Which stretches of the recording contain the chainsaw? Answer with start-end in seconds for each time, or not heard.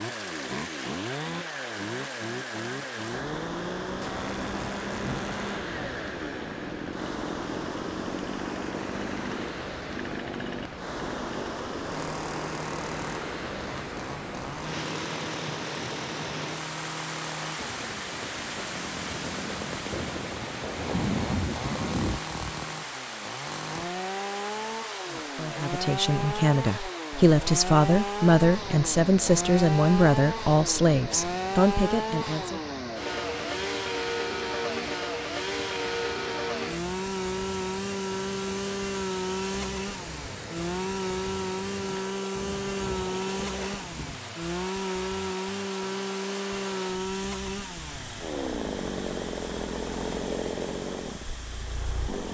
0.0-52.2.